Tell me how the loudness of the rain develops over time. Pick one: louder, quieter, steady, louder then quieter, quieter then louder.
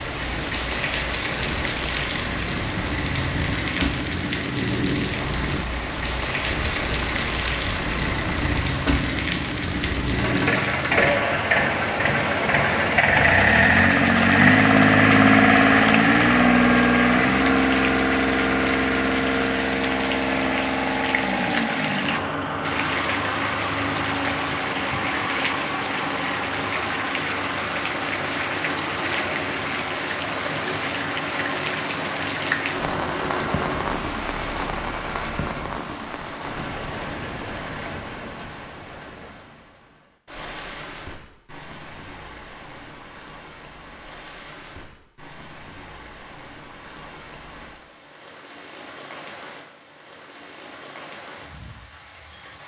quieter.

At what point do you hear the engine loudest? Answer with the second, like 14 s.
15 s.